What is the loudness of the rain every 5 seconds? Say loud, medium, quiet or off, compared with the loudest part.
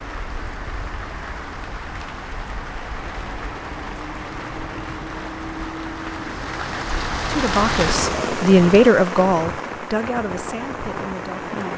medium, loud, loud.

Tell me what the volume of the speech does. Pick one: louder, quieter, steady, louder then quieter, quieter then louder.
louder then quieter.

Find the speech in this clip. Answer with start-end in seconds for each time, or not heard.
7.2-11.7.